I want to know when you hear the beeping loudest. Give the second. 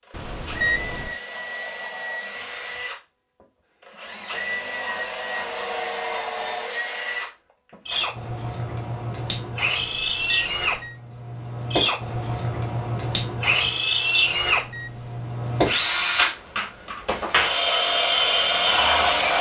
1 s.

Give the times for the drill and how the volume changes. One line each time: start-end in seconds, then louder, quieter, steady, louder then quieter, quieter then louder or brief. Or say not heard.
0.1-19.3 louder.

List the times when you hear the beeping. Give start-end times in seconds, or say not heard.
0.1-1.2, 9.8-11.0, 14.5-15.2.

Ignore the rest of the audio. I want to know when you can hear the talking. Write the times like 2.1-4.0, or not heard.
not heard.